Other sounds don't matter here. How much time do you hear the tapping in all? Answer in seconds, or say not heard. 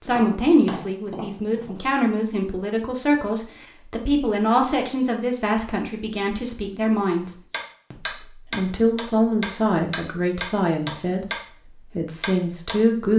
6 s.